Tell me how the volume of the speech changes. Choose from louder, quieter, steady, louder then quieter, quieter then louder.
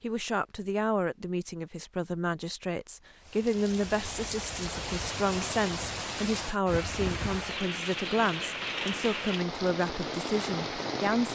steady.